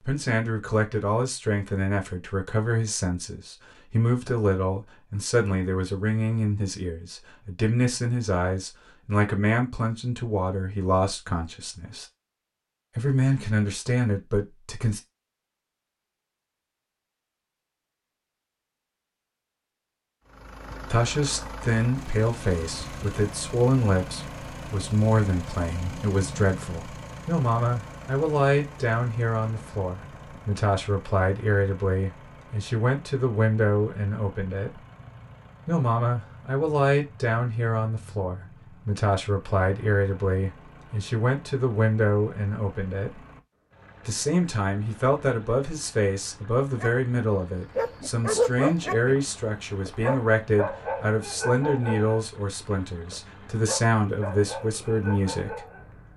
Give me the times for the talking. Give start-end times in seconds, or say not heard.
0.0-12.1, 12.9-15.0, 20.9-34.8, 35.6-43.2, 44.0-55.6.